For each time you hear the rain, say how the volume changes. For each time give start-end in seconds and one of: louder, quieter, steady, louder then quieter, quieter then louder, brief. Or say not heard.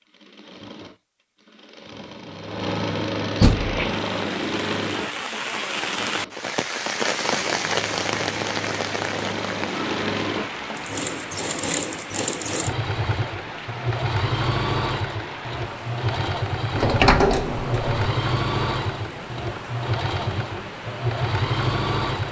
3.5-22.2 quieter.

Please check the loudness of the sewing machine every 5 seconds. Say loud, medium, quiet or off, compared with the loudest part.
loud, medium, loud, loud, loud.